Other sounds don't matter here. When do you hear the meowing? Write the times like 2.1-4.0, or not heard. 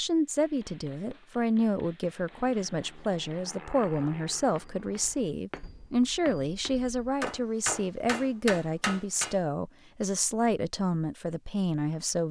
not heard.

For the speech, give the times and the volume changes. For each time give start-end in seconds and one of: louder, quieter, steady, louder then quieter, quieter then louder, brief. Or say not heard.
0.0-12.2 steady.